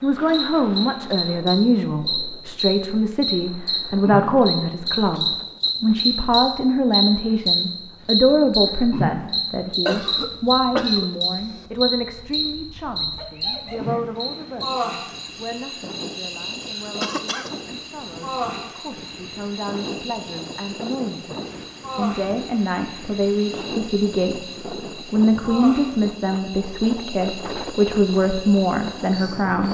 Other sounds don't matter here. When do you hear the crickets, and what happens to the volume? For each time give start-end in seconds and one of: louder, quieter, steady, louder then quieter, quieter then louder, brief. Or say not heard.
0.0-29.6 quieter.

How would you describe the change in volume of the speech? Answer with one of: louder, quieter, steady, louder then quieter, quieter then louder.
quieter then louder.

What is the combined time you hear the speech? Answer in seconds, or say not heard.
29 s.